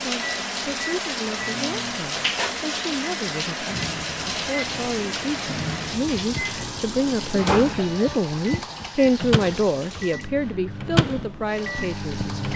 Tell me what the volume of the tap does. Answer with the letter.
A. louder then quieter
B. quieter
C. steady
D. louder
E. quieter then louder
B.